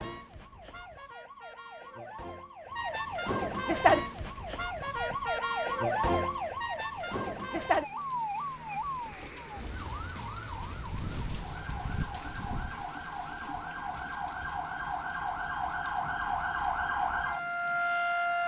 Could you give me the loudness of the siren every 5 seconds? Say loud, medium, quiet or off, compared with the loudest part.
loud, loud, medium, loud.